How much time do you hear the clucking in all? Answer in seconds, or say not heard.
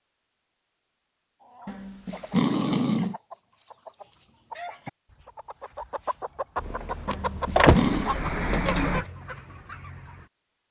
9 s.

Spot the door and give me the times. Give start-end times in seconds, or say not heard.
6.7-8.0.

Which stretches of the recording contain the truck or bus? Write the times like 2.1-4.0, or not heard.
6.5-9.1.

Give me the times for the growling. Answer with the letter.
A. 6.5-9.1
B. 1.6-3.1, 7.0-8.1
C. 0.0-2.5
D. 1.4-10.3
B.